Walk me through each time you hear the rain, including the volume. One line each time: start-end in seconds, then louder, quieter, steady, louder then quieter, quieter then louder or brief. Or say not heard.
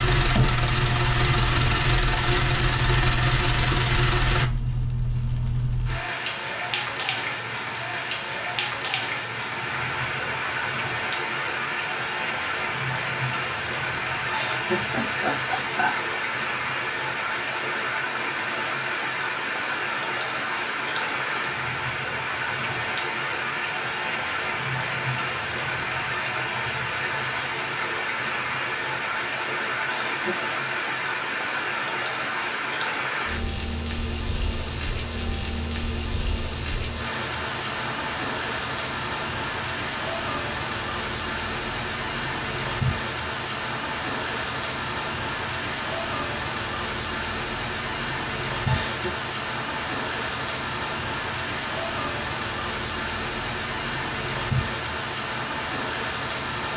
0.1-56.7 steady.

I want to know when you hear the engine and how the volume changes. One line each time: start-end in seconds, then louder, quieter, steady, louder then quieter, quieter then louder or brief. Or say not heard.
0.0-4.5 steady.